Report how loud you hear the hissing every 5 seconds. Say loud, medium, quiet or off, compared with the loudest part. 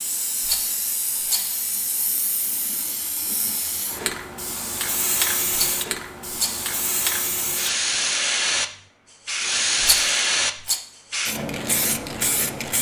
medium, loud, loud.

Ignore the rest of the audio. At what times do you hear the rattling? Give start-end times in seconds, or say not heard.
0.5-1.6, 5.5-6.7, 9.8-10.8.